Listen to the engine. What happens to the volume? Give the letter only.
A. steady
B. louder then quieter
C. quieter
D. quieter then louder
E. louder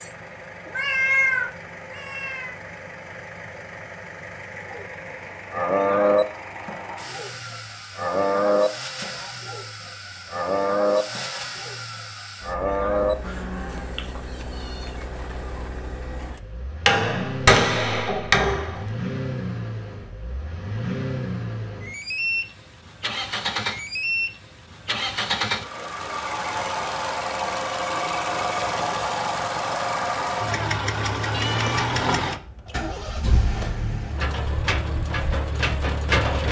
E.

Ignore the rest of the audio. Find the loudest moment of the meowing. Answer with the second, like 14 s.
1 s.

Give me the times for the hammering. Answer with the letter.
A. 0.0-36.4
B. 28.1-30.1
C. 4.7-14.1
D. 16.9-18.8
D.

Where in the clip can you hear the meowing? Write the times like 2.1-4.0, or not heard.
0.7-2.5, 13.9-15.7, 31.3-31.9.